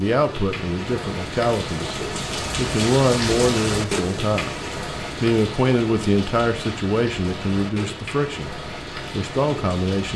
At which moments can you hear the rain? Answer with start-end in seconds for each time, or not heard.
0.0-10.1.